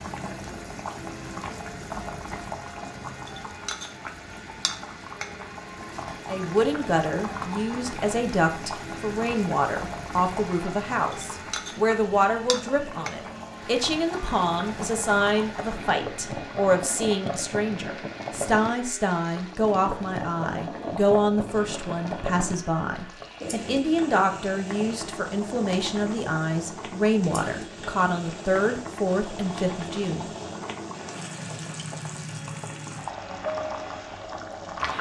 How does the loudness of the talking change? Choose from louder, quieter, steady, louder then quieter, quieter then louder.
steady.